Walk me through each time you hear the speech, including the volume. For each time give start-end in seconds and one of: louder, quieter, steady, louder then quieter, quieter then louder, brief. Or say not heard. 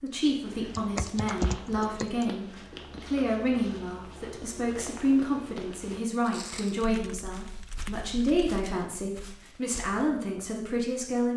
0.0-11.3 steady.